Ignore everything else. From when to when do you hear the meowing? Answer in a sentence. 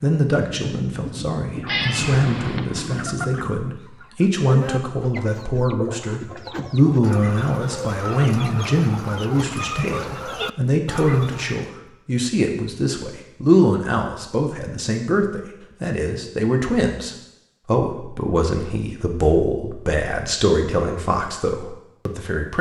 You can hear the meowing from 1.6 to 2.7 s.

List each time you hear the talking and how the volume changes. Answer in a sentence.
You can hear the talking from 0.0 to 22.5 s, at a steady volume.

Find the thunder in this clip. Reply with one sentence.
You can hear the thunder from 0.2 to 3.8 s.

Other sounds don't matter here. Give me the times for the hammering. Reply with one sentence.
The hammering can't be heard in this clip.